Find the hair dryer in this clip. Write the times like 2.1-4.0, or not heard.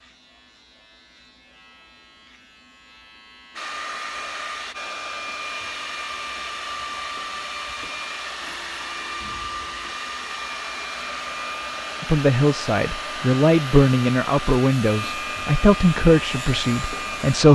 3.5-17.5.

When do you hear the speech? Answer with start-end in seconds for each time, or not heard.
12.0-17.5.